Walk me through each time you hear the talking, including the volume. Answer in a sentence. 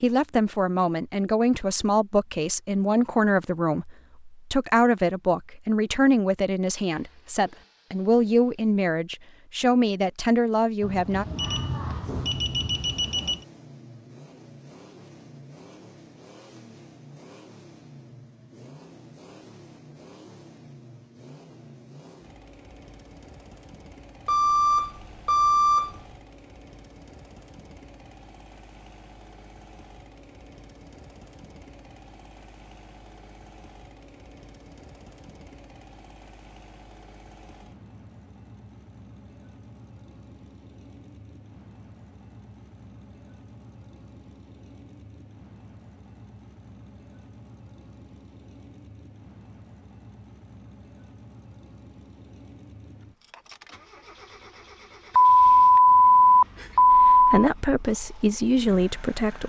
You can hear the talking from 0.0 to 11.2 s, at a steady volume; and briefly from 56.9 to 59.4 s.